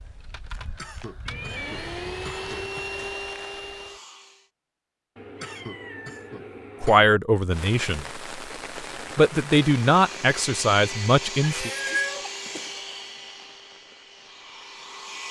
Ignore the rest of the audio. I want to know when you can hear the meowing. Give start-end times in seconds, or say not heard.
1.2-1.9, 5.2-7.0, 11.4-12.2.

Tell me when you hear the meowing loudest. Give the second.
12 s.